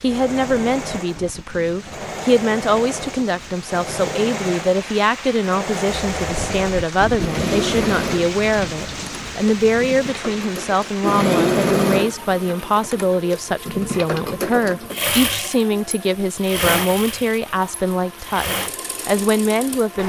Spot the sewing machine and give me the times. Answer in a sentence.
The sewing machine can be heard from 0.1 to 20.0 s.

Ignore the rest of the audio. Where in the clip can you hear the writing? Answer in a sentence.
The writing can't be heard in this clip.